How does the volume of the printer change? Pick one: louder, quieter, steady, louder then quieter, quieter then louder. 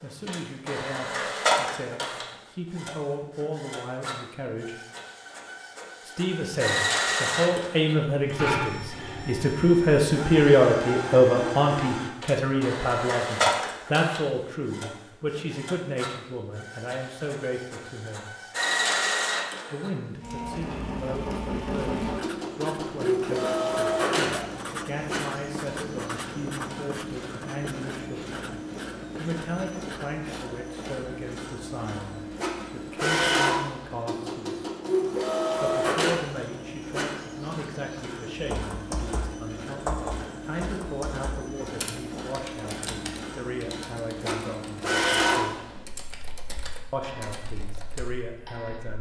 steady.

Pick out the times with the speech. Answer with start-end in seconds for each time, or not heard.
0.0-4.8, 6.0-18.4, 19.7-34.6, 35.6-45.6, 46.9-48.9.